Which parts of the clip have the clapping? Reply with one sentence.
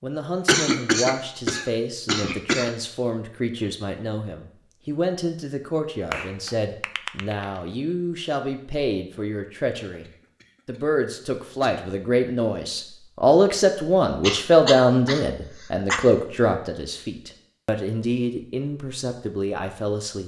The clapping can be heard from 6.1 to 7.7 s.